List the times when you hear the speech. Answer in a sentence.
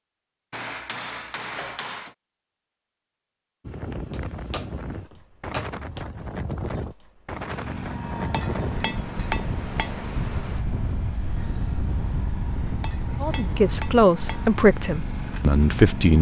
You can hear the speech from 13.2 to 16.1 s.